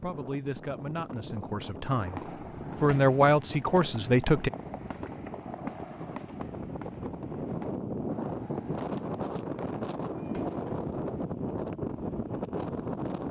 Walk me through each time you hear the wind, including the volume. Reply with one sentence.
You can hear the wind from 0.0 to 13.2 s, getting louder.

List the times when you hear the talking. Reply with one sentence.
The talking can be heard from 0.0 to 4.5 s.